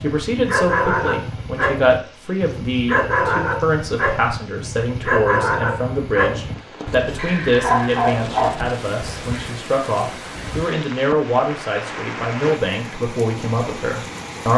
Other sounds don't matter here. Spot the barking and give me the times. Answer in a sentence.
You can hear the barking from 0.0 to 9.6 s.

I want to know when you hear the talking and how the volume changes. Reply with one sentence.
You can hear the talking from 0.0 to 14.5 s, at a steady volume.